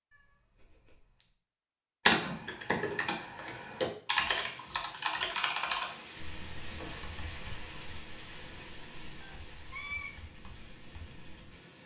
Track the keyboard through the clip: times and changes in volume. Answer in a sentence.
The keyboard can be heard from 2.0 to 11.5 s, getting quieter.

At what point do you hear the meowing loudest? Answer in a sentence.
The volume of the meowing peaks at 10 seconds.